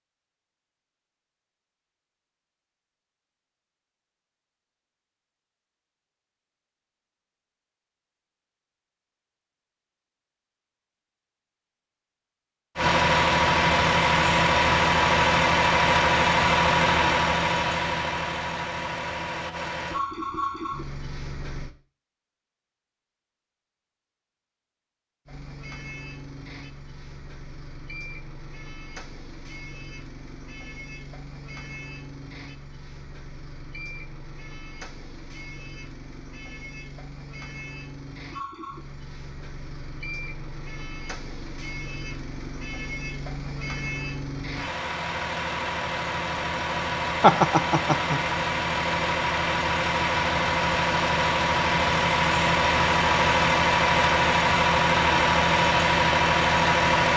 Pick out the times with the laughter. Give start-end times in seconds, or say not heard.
47.2-48.2.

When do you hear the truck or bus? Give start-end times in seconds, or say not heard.
12.8-21.8, 25.2-57.1.